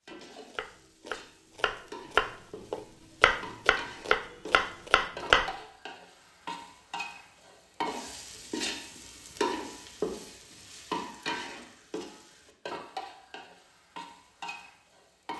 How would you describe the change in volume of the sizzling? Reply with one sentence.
The volume of the sizzling goes up, then down.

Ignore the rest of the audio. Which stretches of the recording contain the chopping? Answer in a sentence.
You can hear the chopping from 0.5 to 5.5 s.